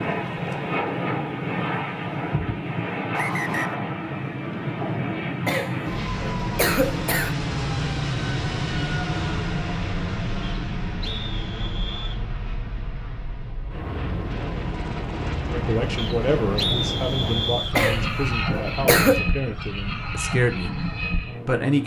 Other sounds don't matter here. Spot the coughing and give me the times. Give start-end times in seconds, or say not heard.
5.5-7.3, 17.8-19.2.